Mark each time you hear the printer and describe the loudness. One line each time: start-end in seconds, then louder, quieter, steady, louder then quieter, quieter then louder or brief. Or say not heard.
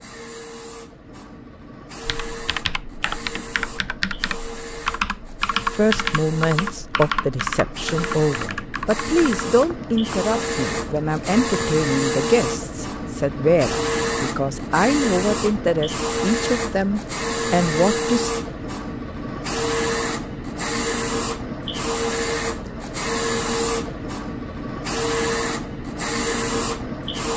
0.0-27.3 louder.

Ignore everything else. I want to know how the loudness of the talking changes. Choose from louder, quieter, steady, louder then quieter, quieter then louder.
steady.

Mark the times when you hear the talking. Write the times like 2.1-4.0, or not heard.
5.7-18.3.